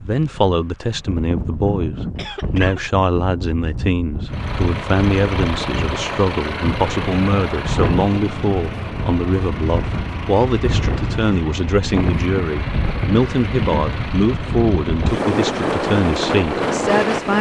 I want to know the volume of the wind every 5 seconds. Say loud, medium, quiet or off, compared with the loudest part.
medium, medium, medium, loud.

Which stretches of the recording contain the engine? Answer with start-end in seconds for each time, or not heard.
4.2-17.3.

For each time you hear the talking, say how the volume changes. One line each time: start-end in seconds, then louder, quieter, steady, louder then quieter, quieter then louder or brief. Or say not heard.
0.0-17.3 steady.